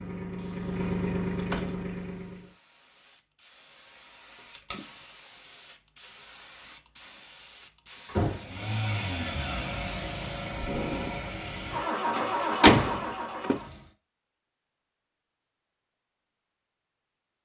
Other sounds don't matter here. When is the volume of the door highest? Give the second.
13 s.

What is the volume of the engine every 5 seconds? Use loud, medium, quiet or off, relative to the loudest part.
loud, loud, loud, off.